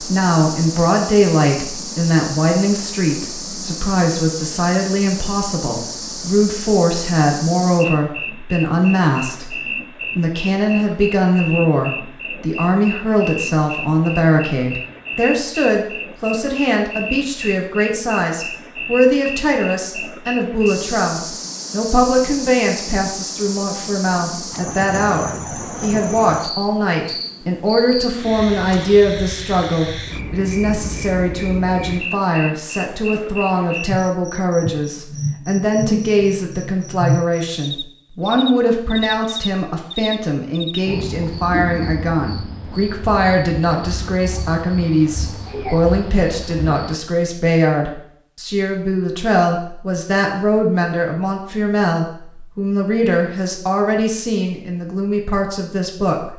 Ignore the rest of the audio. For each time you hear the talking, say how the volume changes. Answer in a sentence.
You can hear the talking from 0.0 to 9.6 s, at a steady volume; and from 10.2 to 56.3 s, at a steady volume.